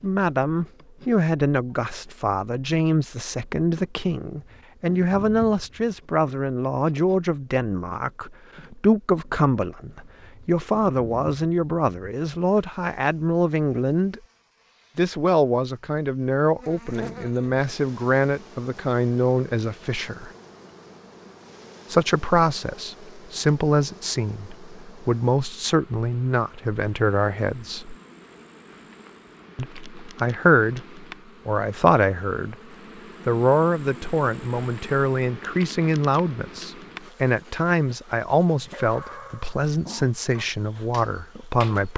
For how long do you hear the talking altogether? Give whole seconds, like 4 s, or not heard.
37 s.